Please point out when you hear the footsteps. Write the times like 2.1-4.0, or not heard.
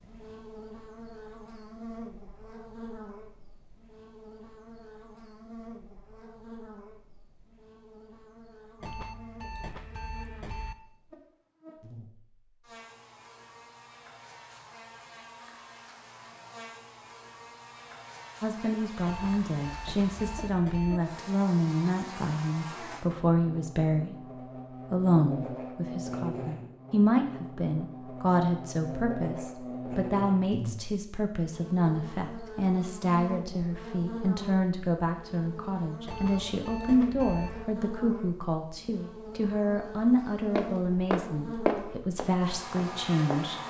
40.5-43.5.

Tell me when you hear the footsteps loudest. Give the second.
42 s.